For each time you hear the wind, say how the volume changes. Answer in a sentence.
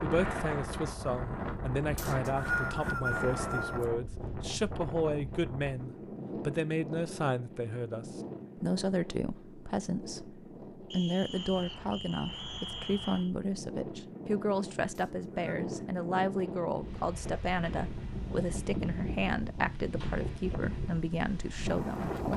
The wind can be heard from 0.0 to 22.3 s, getting quieter then louder.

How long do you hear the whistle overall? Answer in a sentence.
You can hear the whistle for 5 seconds altogether.